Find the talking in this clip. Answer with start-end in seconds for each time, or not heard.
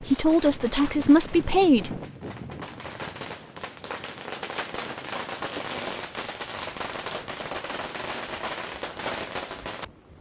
0.0-1.9.